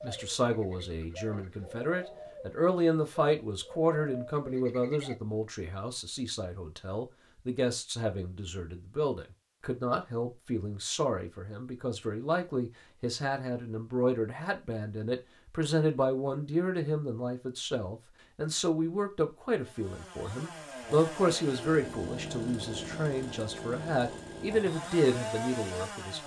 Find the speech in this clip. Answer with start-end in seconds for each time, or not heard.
0.0-26.2.